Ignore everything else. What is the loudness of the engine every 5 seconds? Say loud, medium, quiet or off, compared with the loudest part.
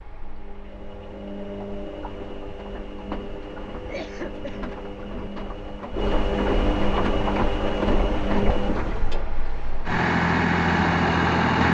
quiet, medium, loud.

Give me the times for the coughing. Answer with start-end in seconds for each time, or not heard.
3.8-4.8.